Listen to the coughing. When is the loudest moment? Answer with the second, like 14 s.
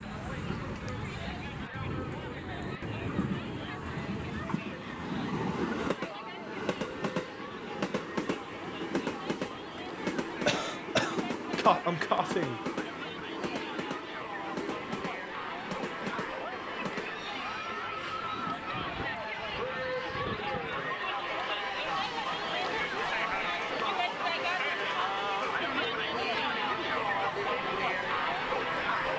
12 s.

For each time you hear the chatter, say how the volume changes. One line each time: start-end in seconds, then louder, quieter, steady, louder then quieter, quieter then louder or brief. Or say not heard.
0.0-29.1 louder.